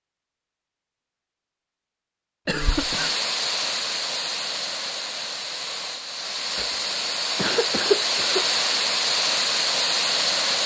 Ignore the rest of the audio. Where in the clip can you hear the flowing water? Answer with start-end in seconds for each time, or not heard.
2.5-10.6.